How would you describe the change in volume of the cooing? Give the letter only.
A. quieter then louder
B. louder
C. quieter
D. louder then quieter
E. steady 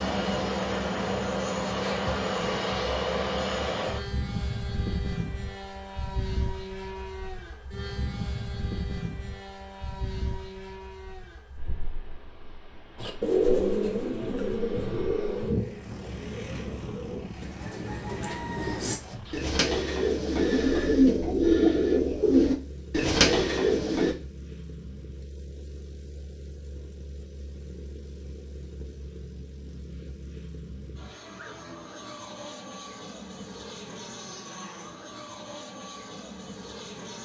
A.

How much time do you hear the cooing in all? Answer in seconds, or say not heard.
11 s.